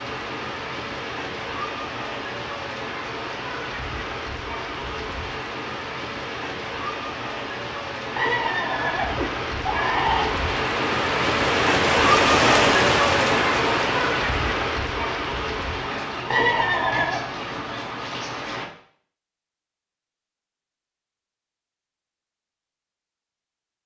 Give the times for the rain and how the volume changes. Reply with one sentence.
The rain can be heard from 0.0 to 18.7 s, getting louder then quieter.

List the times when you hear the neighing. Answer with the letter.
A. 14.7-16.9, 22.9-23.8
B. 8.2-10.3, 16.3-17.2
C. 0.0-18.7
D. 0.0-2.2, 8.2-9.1
B.